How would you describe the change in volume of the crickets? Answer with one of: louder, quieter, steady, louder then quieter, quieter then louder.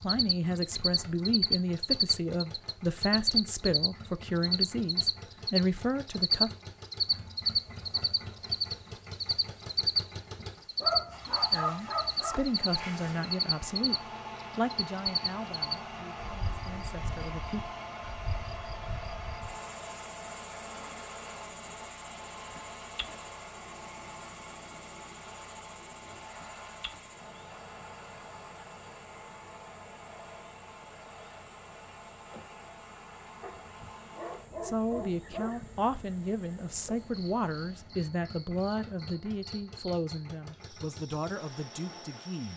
quieter.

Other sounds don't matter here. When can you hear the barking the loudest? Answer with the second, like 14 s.
12 s.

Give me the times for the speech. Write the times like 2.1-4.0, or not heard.
0.0-6.5, 11.5-17.6, 34.6-42.5.